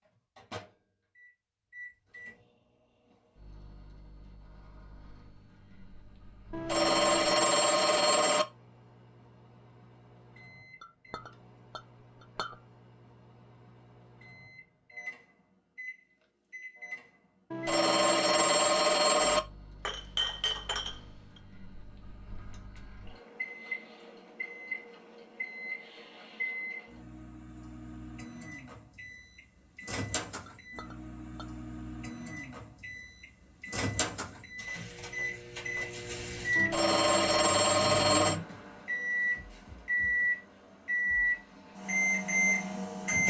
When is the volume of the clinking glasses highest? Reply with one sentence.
The volume of the clinking glasses peaks at 20 seconds.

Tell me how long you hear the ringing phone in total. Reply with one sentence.
You can hear the ringing phone for 6 seconds altogether.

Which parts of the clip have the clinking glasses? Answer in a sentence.
The clinking glasses can be heard from 10.8 to 12.6 s, from 19.9 to 21.4 s and from 30.4 to 31.4 s.